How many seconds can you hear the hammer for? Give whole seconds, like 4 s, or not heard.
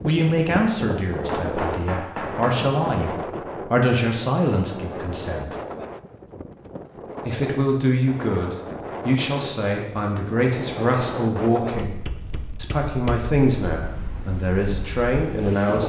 3 s.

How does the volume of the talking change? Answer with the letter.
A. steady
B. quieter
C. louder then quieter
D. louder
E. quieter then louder
A.